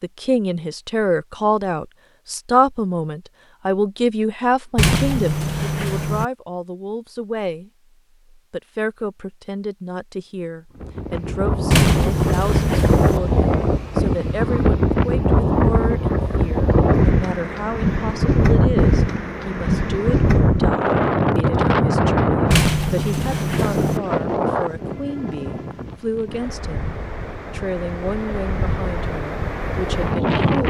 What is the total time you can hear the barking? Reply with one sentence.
The barking can't be heard in this clip.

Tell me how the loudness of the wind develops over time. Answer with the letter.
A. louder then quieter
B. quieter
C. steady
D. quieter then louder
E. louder
B.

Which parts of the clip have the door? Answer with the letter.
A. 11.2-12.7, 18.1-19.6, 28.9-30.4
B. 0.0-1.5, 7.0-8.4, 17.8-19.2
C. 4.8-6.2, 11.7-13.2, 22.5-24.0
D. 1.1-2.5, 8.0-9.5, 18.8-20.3
C.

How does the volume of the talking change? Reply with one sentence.
The volume of the talking goes down.